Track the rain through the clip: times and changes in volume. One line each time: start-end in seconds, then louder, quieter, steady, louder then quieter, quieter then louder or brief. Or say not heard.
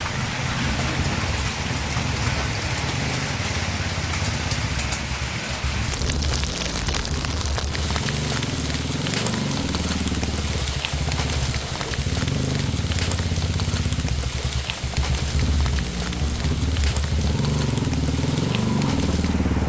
0.0-19.6 quieter.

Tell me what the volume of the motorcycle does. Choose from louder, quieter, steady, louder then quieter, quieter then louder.
louder.